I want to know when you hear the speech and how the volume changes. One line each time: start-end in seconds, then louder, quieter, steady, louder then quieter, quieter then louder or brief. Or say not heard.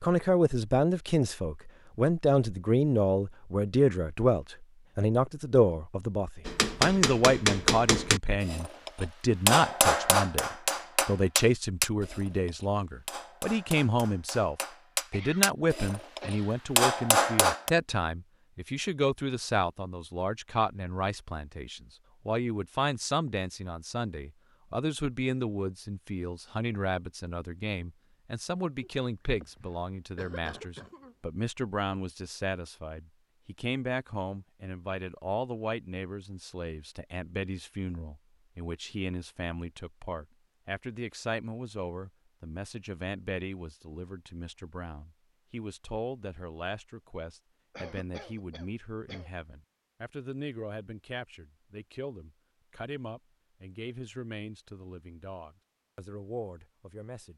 0.0-57.3 quieter.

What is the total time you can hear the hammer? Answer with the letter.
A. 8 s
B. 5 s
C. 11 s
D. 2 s
C.